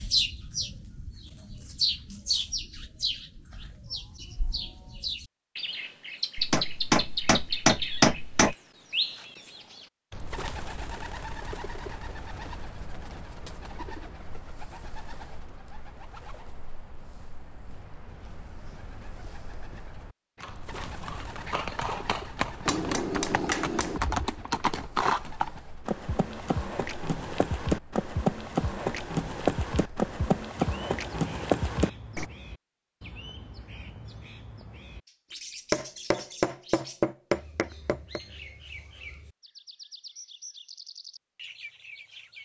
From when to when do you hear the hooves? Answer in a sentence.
You can hear the hooves from 20.4 to 32.3 s.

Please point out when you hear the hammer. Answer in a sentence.
You can hear the hammer from 6.3 to 8.6 s, from 22.6 to 24.0 s and from 35.3 to 38.2 s.